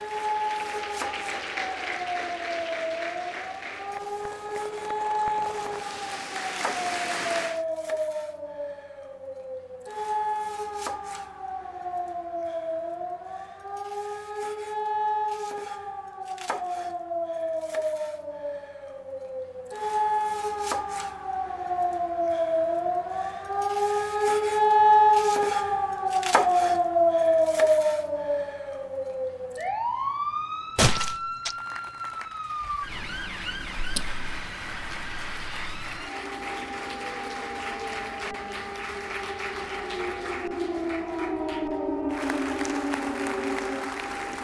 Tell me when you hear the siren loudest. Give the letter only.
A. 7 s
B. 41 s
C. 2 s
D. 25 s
D.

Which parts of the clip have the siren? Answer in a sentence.
The siren can be heard from 0.0 to 44.3 s.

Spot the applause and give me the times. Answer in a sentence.
You can hear the applause from 0.0 to 7.7 s and from 31.4 to 44.3 s.